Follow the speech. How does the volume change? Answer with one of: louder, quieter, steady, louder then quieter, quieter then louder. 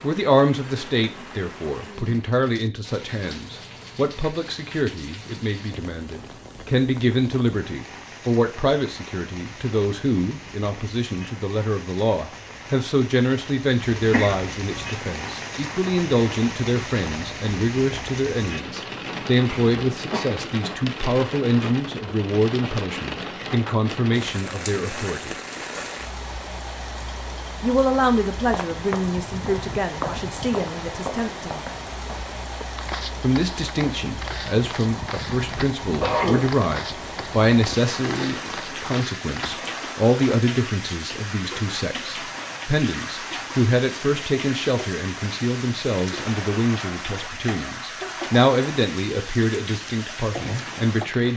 steady.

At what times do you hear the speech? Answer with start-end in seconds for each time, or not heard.
0.0-25.4, 27.6-31.6, 33.2-51.3.